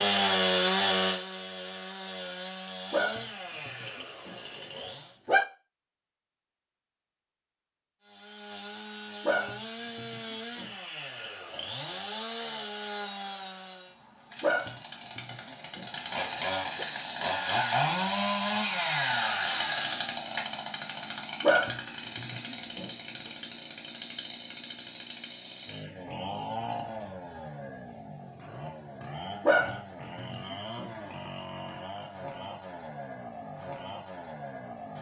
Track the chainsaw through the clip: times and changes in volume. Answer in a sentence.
The chainsaw can be heard from 0.0 to 5.2 s, getting quieter; and from 8.0 to 34.9 s, getting louder then quieter.